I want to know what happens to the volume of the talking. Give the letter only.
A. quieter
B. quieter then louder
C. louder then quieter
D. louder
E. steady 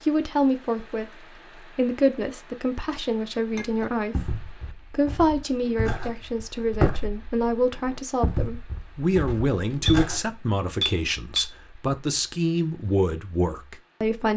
E.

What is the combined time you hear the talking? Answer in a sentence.
The talking can be heard for 14 seconds in total.